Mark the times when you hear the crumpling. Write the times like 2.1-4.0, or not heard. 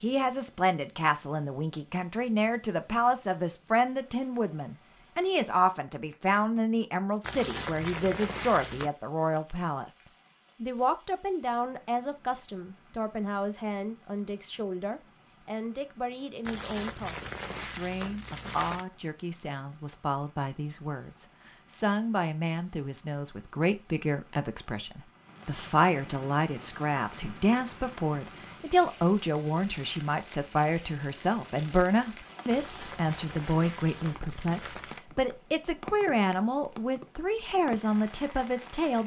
7.2-8.9, 16.4-18.9, 32.5-35.0.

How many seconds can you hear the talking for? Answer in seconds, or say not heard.
39 s.